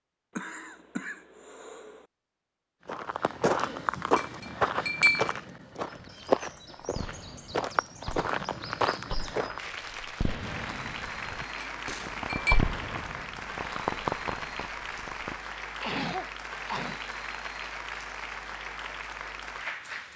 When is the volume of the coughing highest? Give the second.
16 s.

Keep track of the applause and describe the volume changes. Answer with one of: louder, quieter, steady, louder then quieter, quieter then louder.
steady.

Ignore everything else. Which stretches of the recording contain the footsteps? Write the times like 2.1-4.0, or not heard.
2.9-9.7.